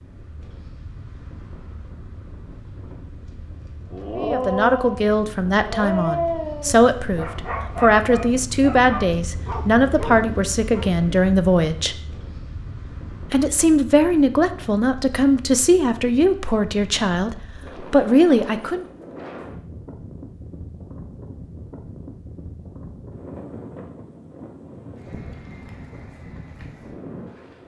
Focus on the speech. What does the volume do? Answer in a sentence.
The volume of the speech stays about the same.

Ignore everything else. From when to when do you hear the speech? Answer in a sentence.
The speech can be heard from 4.2 to 11.9 s and from 13.3 to 18.9 s.